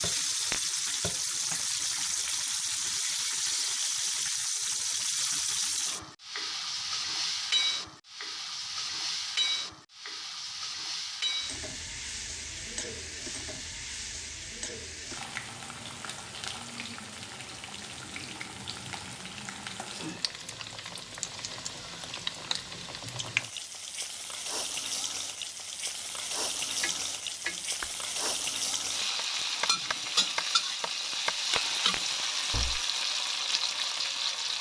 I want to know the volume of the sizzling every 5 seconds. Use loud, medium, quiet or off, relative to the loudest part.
loud, loud, medium, medium, medium, loud, loud.